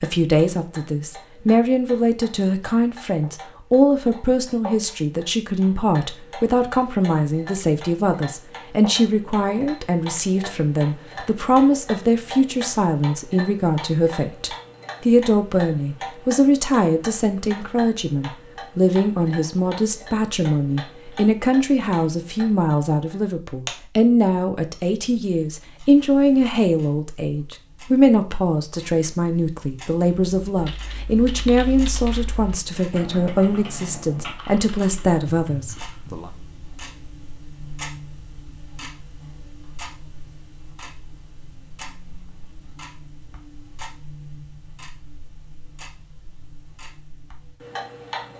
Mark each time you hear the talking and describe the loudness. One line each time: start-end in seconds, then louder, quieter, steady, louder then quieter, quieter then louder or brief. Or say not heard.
0.0-36.3 steady.